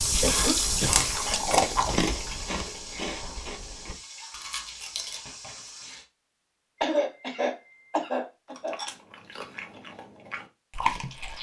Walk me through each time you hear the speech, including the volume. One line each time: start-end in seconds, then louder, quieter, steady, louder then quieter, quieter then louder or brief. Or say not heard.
not heard.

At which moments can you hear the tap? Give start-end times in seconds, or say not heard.
0.0-6.0.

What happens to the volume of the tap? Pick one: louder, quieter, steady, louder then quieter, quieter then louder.
quieter.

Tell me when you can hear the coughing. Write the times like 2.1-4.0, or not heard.
0.2-1.1, 6.8-8.8.